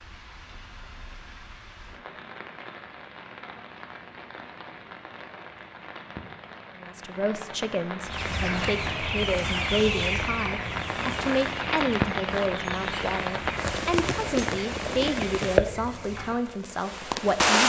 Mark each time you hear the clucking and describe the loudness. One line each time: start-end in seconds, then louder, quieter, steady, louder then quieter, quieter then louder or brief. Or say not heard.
8.0-16.4 quieter.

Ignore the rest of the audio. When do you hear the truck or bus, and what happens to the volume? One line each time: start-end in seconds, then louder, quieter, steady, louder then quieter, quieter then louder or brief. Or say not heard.
not heard.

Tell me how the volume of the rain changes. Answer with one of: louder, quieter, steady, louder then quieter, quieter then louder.
louder.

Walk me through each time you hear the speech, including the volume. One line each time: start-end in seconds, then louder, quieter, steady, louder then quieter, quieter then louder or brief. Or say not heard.
6.8-17.6 steady.